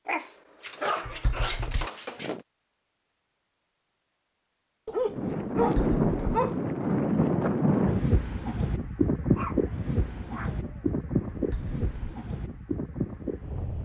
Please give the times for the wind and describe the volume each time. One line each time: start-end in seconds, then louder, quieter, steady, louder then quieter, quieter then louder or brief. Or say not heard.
5.0-13.8 quieter.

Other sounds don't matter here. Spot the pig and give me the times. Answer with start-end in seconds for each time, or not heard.
not heard.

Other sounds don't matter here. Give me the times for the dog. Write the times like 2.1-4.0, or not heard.
0.1-2.5, 4.8-6.7, 9.3-11.2.